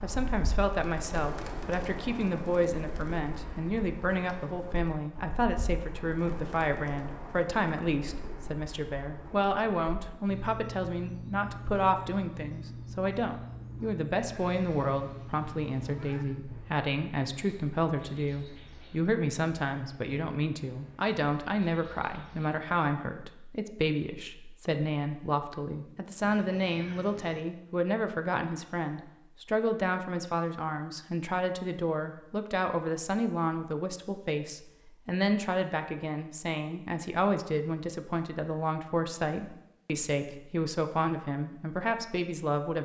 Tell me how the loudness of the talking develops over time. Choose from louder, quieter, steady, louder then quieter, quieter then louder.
steady.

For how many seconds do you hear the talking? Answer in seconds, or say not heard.
43 s.